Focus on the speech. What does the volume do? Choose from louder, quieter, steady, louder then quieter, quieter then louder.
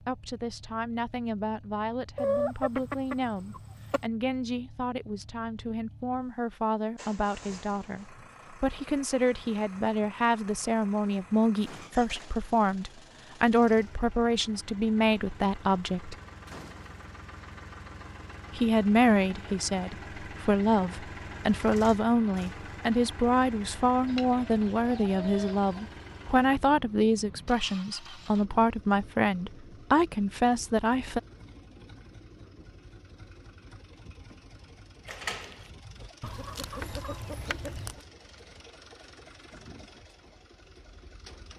louder.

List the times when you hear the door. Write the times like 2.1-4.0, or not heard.
11.6-12.2, 16.4-16.9, 35.0-35.7.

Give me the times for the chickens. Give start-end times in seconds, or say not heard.
2.1-4.0, 24.1-25.9, 36.2-38.0.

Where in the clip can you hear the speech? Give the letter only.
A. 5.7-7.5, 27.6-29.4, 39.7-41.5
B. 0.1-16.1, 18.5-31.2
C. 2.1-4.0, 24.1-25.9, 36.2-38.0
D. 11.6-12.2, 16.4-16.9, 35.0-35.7
B.